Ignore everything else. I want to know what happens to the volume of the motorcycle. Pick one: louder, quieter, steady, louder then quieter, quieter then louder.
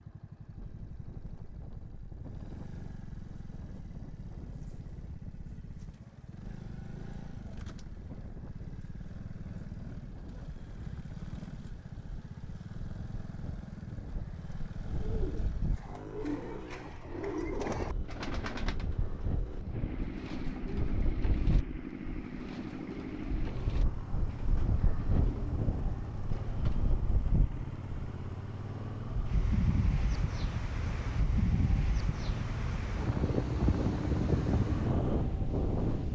louder.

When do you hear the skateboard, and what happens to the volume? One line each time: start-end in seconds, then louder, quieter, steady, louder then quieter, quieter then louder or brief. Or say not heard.
not heard.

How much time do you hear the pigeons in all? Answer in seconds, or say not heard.
12 s.